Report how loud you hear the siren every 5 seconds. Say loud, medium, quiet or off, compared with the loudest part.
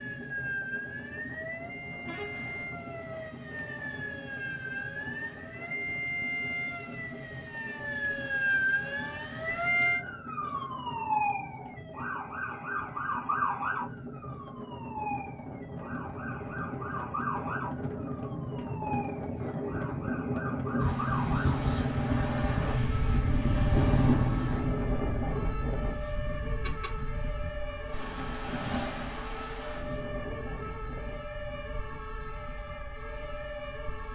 medium, loud, loud, medium, medium, medium, medium.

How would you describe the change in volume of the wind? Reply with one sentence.
The loudness of the wind goes up, then down.